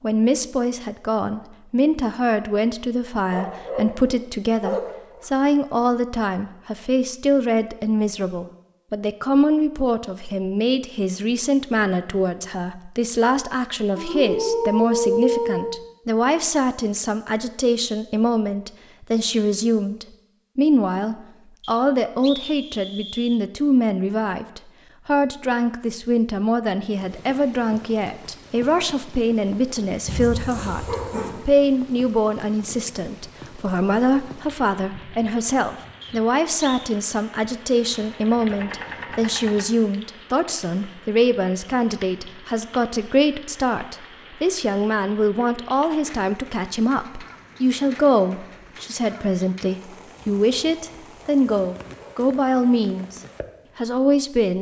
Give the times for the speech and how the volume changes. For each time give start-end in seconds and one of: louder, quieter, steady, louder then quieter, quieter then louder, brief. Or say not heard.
0.0-54.5 steady.